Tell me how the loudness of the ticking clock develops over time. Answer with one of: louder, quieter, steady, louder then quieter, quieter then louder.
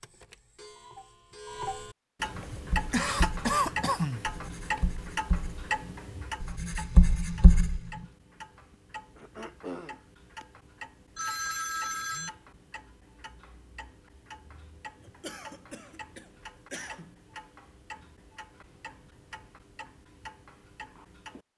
quieter.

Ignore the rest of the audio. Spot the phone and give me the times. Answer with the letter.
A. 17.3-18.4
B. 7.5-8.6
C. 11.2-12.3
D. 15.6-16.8
C.